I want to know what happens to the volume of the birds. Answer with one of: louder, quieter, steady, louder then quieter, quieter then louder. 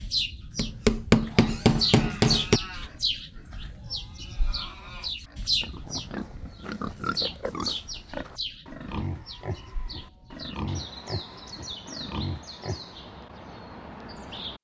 quieter.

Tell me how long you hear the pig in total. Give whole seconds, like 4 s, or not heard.
12 s.